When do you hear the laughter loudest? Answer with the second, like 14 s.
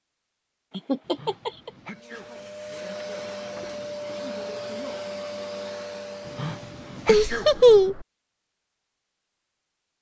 8 s.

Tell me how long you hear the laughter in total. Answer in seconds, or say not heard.
2 s.